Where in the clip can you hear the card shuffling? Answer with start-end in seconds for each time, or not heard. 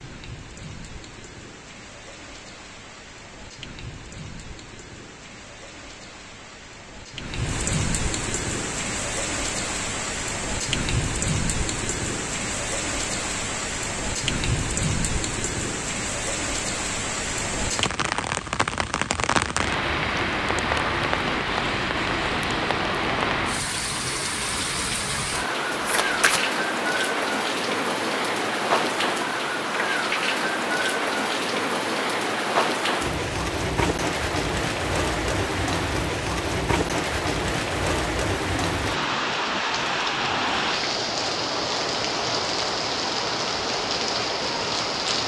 25.8-26.4.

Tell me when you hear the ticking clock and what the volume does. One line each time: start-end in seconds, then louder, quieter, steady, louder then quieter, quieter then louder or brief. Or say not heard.
not heard.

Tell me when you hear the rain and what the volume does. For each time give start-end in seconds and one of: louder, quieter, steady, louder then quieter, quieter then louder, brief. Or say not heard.
0.0-45.2 louder.